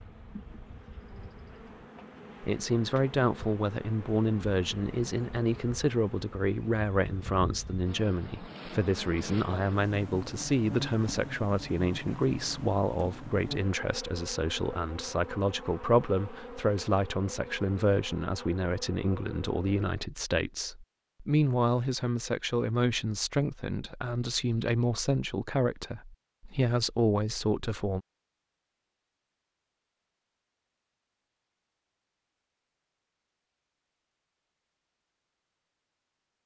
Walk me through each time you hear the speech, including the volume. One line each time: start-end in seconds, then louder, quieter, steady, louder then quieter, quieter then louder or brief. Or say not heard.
2.4-28.0 steady.